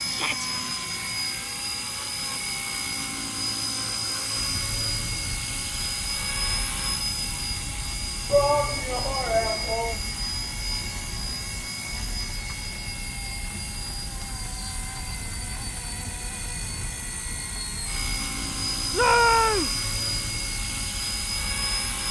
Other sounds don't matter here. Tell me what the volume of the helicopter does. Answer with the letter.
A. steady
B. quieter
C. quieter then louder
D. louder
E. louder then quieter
C.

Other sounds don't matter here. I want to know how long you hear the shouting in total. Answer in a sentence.
You can hear the shouting for 3 seconds altogether.